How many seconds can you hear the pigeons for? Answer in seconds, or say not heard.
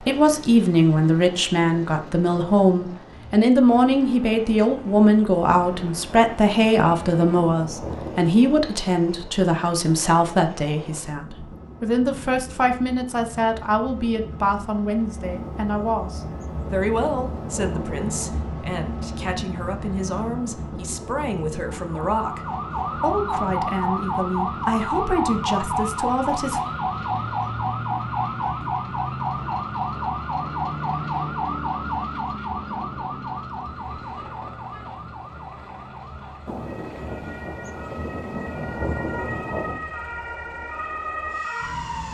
not heard.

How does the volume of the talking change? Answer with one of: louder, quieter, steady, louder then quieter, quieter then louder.
quieter.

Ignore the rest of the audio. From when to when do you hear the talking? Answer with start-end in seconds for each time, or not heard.
0.1-26.6.